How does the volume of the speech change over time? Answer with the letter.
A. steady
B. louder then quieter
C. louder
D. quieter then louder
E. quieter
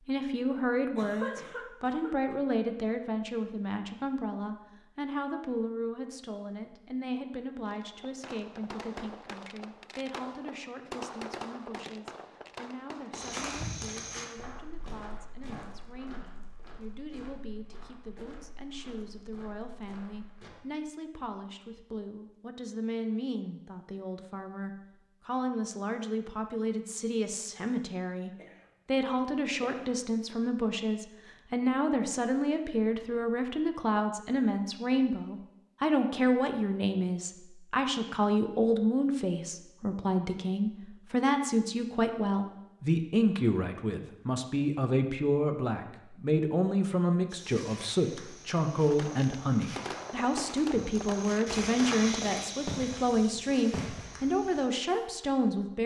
D.